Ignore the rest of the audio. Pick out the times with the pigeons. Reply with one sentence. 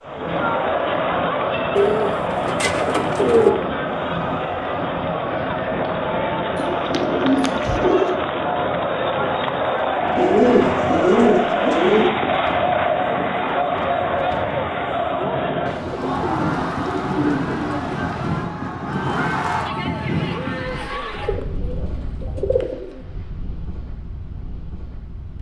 The pigeons can be heard from 1.8 to 3.5 s, from 6.5 to 8.2 s, from 10.2 to 12.1 s, from 15.7 to 18.5 s and from 21.2 to 23.0 s.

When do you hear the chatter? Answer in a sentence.
The chatter can be heard from 0.0 to 21.4 s.